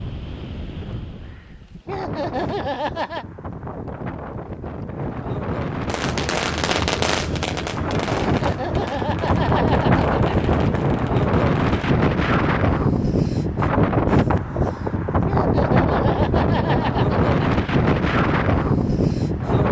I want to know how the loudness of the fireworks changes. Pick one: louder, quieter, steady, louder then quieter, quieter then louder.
quieter.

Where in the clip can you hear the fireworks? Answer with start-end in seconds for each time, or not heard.
5.8-11.9.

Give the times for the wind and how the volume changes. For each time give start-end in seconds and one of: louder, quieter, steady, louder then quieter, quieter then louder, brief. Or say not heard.
0.0-19.6 louder.